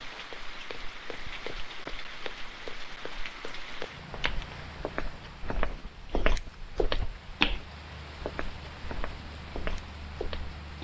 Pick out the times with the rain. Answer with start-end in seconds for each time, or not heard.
0.0-10.7.